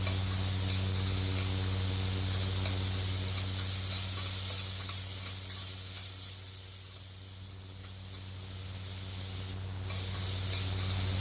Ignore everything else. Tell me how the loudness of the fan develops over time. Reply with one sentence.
The loudness of the fan goes down, then up.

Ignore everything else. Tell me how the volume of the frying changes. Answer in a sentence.
The volume of the frying goes down, then up.